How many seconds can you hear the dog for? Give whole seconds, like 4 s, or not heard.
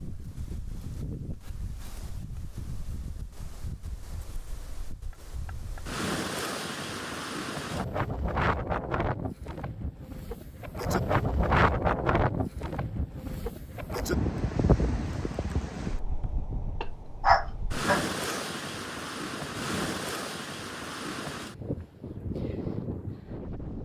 2 s.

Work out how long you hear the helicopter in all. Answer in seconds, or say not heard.
not heard.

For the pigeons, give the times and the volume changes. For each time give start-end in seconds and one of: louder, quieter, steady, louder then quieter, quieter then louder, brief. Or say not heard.
not heard.